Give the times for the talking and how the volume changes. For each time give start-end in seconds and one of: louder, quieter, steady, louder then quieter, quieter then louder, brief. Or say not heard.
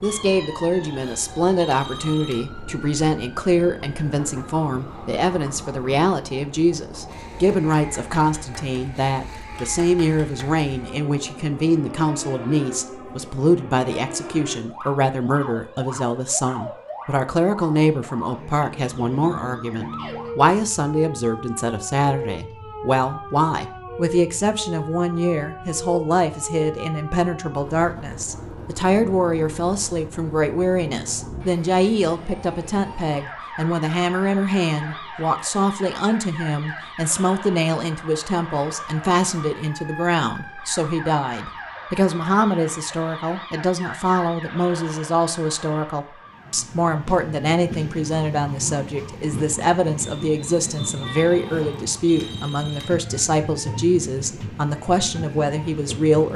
0.0-56.3 steady.